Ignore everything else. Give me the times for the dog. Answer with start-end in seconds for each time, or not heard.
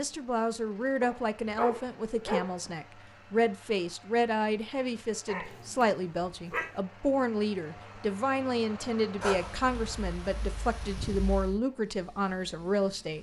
1.0-2.7, 5.2-6.7, 9.2-11.6.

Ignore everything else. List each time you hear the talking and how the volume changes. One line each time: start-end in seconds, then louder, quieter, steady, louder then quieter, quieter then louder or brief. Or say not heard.
0.0-13.1 steady.